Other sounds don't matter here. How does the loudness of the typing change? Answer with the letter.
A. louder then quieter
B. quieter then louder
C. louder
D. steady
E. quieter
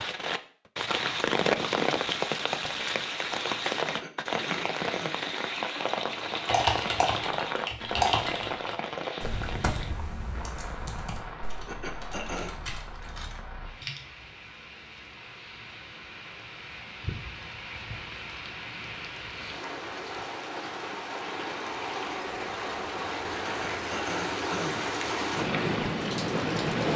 E.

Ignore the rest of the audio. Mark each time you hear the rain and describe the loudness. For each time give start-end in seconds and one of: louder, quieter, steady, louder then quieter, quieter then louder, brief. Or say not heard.
0.0-26.9 quieter then louder.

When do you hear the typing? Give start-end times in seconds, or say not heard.
6.5-14.0.